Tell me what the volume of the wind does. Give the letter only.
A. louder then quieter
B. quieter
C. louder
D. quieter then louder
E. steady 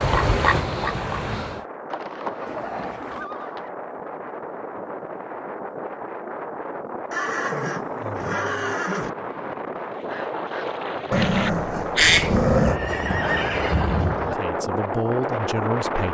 C.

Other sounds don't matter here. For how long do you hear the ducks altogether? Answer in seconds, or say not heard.
4 s.